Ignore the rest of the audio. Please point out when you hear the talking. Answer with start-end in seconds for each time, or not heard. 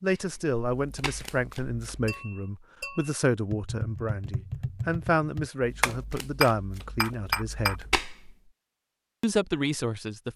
0.0-7.8, 9.2-10.3.